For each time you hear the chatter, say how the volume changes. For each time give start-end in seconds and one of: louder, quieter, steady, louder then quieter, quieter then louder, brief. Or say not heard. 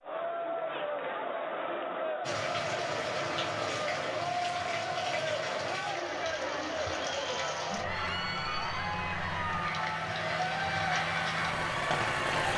0.0-12.5 steady.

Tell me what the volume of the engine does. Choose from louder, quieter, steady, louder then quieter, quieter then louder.
louder.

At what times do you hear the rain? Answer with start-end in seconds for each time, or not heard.
2.2-12.5.